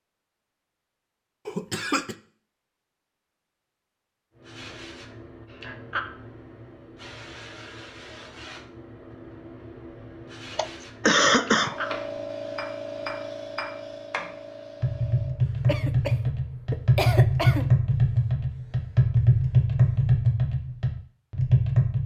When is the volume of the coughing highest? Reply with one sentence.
The volume of the coughing peaks at 11 seconds.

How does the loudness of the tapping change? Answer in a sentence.
The loudness of the tapping goes up.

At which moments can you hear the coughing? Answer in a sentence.
You can hear the coughing from 1.4 to 2.1 s, from 10.5 to 11.7 s and from 15.7 to 17.7 s.